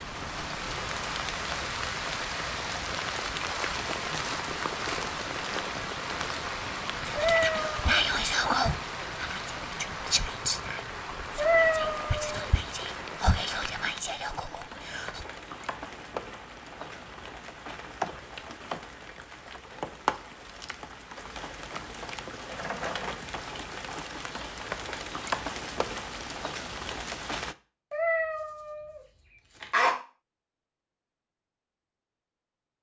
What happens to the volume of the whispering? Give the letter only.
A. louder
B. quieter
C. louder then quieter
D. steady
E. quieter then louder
B.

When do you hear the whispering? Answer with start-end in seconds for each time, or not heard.
7.0-15.2.